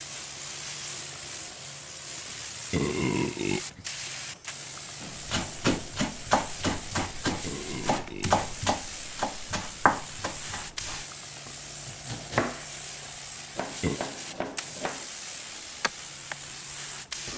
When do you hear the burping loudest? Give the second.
3 s.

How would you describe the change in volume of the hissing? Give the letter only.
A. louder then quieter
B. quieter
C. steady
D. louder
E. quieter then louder
C.